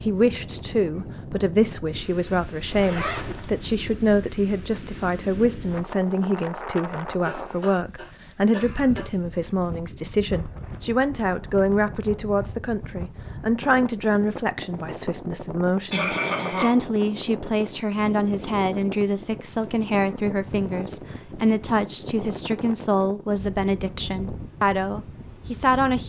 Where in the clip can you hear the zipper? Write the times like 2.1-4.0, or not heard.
2.7-3.5.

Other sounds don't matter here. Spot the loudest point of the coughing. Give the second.
16 s.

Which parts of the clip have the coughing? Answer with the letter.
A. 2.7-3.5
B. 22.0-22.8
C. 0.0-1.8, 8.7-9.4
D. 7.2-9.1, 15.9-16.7
D.